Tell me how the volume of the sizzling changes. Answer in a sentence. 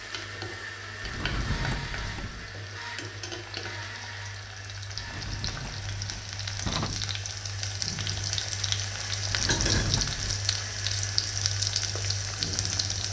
The loudness of the sizzling goes up.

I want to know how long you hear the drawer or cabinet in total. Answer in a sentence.
You can hear the drawer or cabinet for 5 seconds altogether.